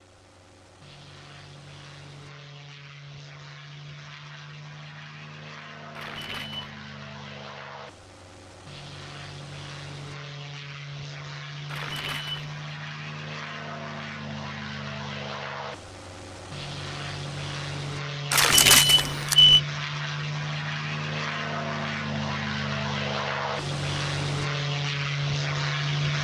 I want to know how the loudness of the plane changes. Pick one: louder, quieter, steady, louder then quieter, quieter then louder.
louder.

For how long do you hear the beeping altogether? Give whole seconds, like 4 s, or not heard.
3 s.